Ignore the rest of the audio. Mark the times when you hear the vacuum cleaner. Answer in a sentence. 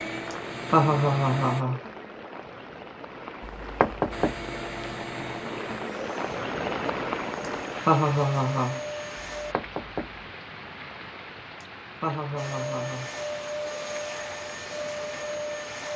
You can hear the vacuum cleaner from 0.0 to 1.6 s, from 4.1 to 9.6 s and from 12.3 to 15.9 s.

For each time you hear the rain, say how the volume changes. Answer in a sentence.
You can hear the rain from 0.0 to 15.9 s, getting louder then quieter.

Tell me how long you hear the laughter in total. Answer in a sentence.
The laughter can be heard for 3 seconds in total.